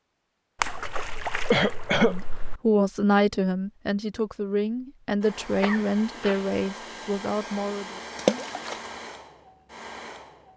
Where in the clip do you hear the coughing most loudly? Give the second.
2 s.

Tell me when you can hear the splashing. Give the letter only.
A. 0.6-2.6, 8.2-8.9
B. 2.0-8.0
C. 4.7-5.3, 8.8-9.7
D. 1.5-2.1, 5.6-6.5
A.